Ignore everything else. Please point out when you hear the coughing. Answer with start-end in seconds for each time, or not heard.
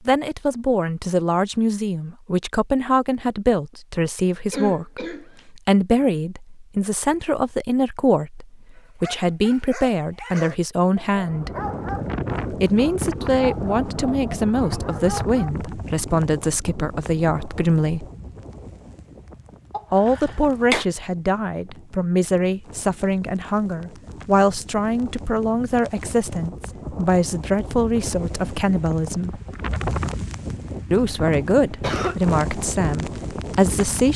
4.5-5.4, 19.7-20.9, 30.9-32.2.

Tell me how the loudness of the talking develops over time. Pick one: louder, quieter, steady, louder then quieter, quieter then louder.
steady.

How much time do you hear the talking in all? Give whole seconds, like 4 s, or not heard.
30 s.